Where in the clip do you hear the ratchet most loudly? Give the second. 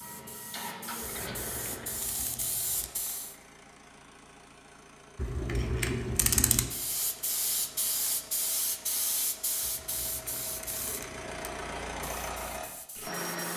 6 s.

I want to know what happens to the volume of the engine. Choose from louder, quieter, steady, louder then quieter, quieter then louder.
quieter then louder.